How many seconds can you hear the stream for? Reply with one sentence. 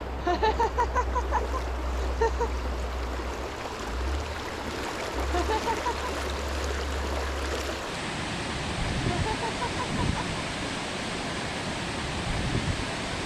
You can hear the stream for 13 seconds altogether.